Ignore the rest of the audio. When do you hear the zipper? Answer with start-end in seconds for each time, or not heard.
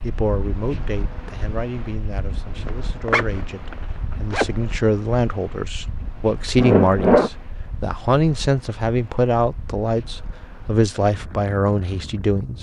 2.6-4.5, 6.5-7.3.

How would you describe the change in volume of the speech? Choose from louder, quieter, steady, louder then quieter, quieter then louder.
louder.